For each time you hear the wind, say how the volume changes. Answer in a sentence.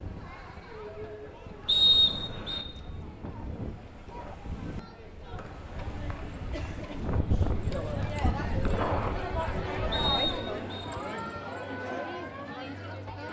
You can hear the wind from 0.0 to 10.3 s, getting louder.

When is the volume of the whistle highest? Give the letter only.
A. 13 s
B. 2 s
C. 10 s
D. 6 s
B.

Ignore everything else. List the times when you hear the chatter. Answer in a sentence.
The chatter can be heard from 0.0 to 13.2 s.